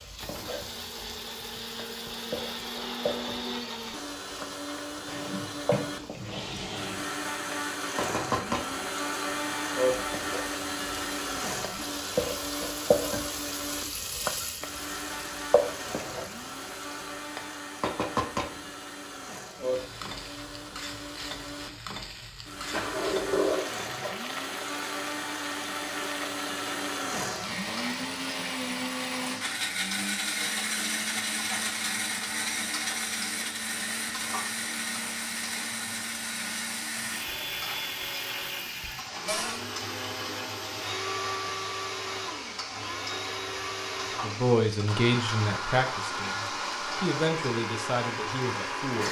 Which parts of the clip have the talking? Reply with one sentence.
The talking can be heard from 44.2 to 49.0 s.